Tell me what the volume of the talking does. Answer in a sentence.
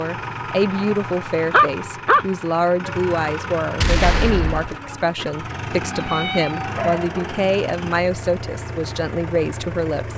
The volume of the talking stays about the same.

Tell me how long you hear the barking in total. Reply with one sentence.
The barking can be heard for 3 seconds in total.